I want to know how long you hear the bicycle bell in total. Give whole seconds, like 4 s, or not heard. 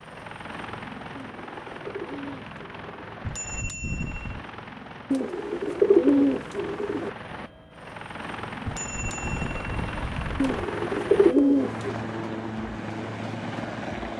3 s.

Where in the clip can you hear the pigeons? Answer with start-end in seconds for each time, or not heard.
1.1-3.1, 5.1-7.1, 10.4-11.9.